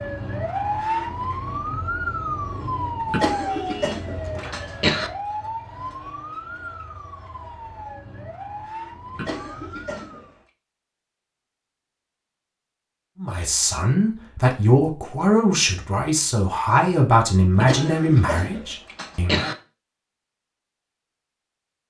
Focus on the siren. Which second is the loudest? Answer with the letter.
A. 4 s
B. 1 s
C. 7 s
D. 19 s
B.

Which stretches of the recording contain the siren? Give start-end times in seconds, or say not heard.
0.0-10.3.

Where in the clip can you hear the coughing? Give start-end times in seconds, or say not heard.
3.0-5.1, 9.1-10.3, 17.6-19.6.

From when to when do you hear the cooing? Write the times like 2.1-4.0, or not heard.
not heard.